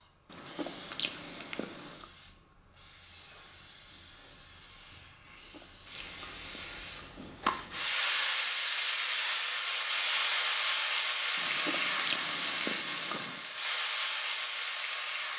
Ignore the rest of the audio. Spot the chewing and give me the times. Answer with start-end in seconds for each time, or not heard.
0.3-2.0, 5.2-7.7, 11.3-13.4.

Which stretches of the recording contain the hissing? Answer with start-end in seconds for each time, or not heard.
0.0-15.3.